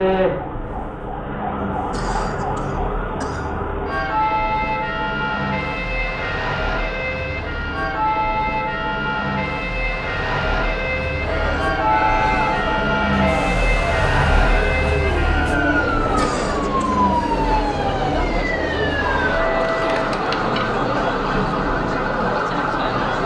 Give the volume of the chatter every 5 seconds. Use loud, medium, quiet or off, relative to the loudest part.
off, off, loud, loud, loud.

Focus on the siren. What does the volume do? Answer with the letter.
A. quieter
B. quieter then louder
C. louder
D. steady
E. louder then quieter
D.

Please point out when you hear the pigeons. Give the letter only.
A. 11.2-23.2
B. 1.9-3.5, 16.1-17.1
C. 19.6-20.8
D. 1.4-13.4
C.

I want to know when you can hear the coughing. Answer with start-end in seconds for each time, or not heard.
1.9-3.5, 16.1-17.1.